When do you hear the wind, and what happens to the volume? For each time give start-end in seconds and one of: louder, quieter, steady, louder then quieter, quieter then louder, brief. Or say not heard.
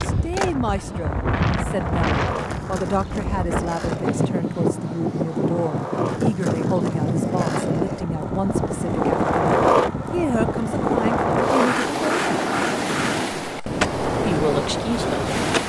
0.0-15.6 steady.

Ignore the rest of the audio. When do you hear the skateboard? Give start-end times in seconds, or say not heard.
0.0-15.6.